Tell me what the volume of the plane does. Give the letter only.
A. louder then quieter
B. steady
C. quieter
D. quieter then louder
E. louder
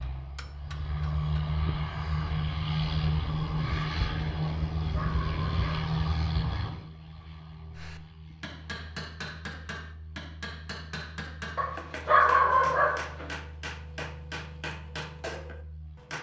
C.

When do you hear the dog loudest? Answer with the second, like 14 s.
12 s.